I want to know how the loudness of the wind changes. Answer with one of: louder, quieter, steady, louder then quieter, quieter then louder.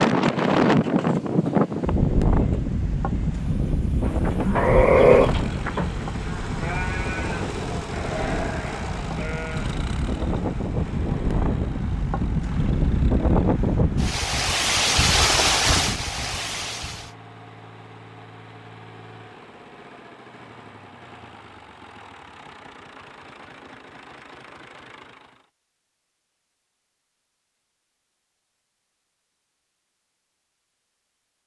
quieter then louder.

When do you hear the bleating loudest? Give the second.
5 s.